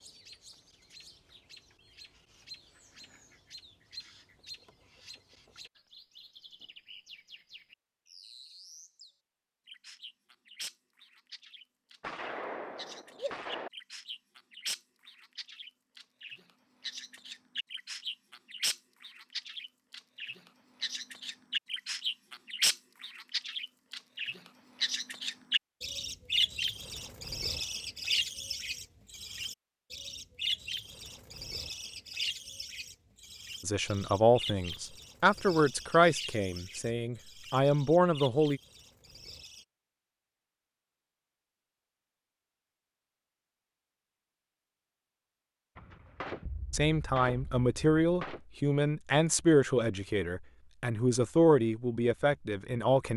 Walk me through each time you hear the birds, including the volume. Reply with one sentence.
The birds can be heard from 0.0 to 39.6 s, getting louder then quieter.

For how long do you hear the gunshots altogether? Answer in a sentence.
The gunshots can be heard for 4 seconds in total.